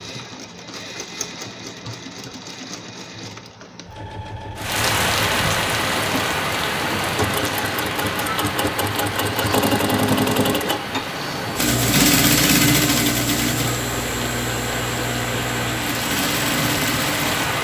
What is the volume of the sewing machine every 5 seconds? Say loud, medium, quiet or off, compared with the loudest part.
quiet, medium, loud, medium.